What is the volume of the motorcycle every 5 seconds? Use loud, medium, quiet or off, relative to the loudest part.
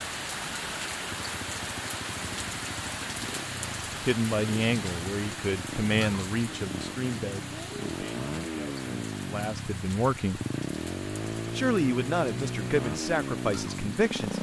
medium, loud, loud.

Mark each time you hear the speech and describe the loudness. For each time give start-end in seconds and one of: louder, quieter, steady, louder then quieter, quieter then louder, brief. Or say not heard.
4.0-10.4 quieter then louder
11.3-14.3 brief.